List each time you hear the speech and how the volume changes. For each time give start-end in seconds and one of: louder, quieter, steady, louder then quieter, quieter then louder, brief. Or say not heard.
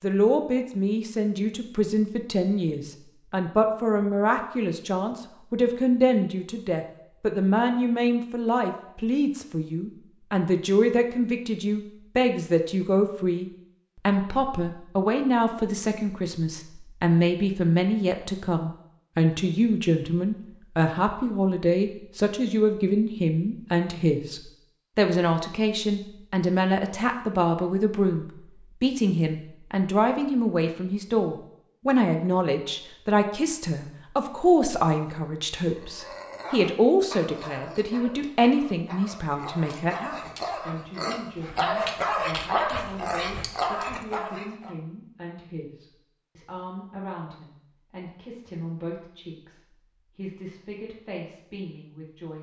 0.0-52.3 quieter.